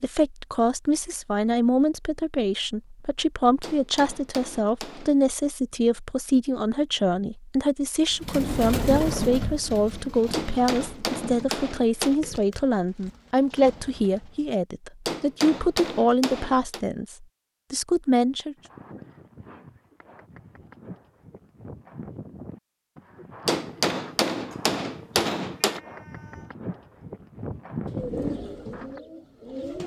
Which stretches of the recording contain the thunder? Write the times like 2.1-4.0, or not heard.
not heard.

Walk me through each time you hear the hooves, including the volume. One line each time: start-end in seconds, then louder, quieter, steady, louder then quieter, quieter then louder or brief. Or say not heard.
18.6-29.0 louder.